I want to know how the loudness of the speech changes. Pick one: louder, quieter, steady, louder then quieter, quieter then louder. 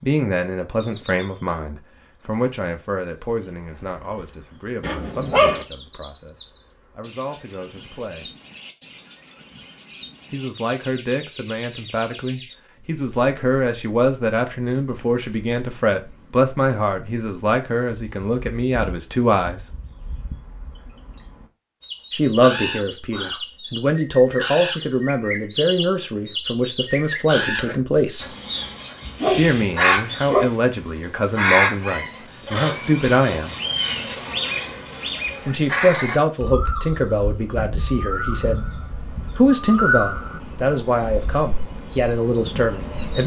louder.